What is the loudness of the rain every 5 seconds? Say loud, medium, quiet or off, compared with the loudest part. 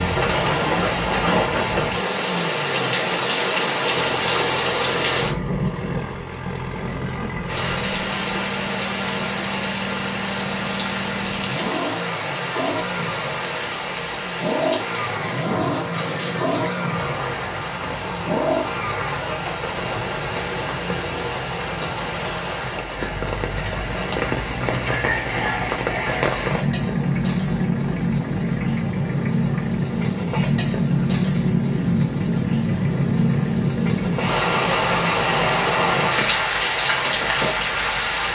loud, medium, medium, medium, medium, loud, loud, loud.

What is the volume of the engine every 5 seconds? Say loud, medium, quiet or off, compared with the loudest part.
medium, medium, loud, loud, medium, medium, medium, quiet.